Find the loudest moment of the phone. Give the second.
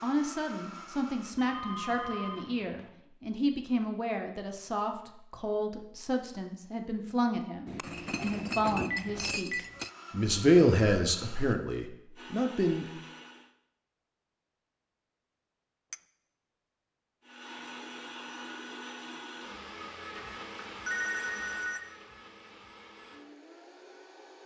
21 s.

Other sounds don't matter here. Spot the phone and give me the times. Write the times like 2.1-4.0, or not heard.
1.4-2.9, 8.9-9.7, 20.1-21.8.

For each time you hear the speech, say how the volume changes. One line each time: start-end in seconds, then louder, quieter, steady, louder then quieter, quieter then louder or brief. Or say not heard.
0.0-12.8 louder.